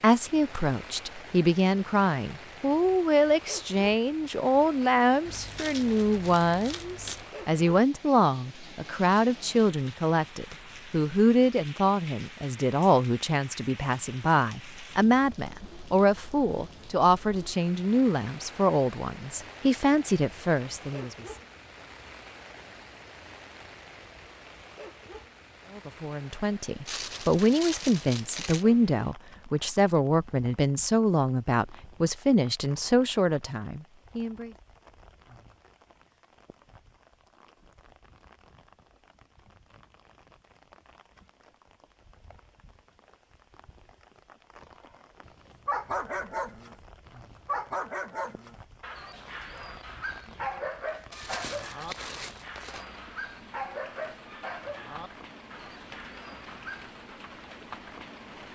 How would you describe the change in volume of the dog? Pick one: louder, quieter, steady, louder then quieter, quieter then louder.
quieter.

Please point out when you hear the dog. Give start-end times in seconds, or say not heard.
45.2-56.9.